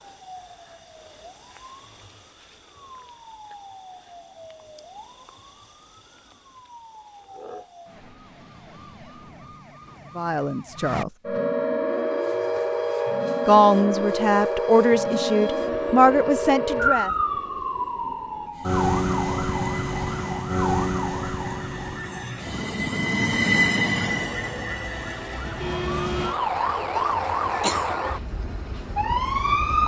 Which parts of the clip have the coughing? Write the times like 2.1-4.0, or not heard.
27.4-27.9.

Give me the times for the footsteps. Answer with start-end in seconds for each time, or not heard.
not heard.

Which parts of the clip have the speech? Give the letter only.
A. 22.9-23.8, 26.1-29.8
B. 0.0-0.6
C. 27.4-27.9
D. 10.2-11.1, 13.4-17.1
D.